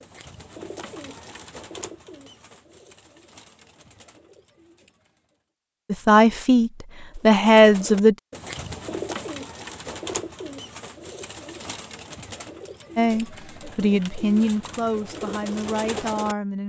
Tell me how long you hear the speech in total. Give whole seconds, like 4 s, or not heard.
6 s.